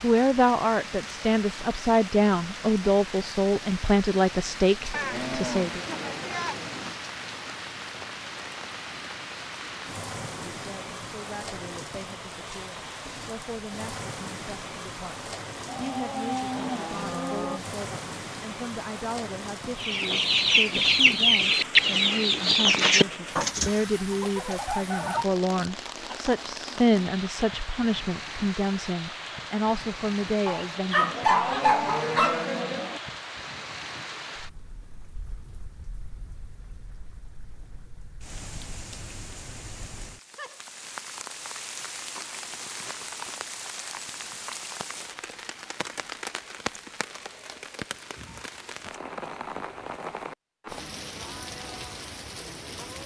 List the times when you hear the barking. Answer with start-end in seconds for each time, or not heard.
30.4-32.5.